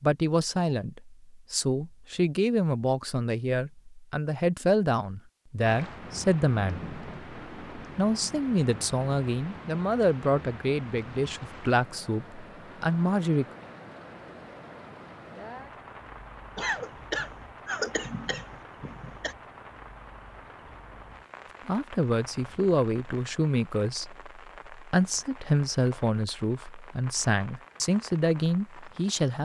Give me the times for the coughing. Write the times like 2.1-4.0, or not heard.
16.6-19.4.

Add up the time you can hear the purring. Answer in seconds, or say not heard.
not heard.